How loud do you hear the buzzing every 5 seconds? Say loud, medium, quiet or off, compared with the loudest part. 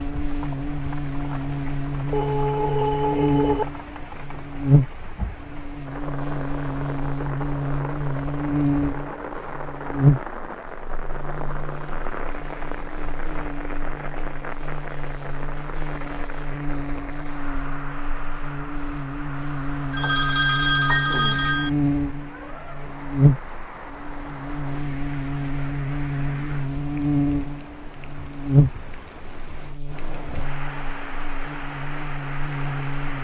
loud, loud, loud, medium, loud, loud, medium.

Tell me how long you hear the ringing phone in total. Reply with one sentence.
You can hear the ringing phone for 3 seconds altogether.